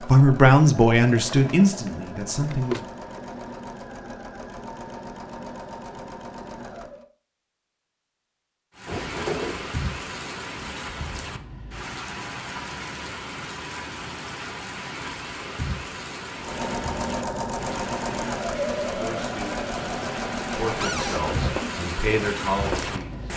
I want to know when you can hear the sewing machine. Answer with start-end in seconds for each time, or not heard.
0.0-7.0, 16.4-23.3.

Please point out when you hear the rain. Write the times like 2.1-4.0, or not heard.
8.8-23.3.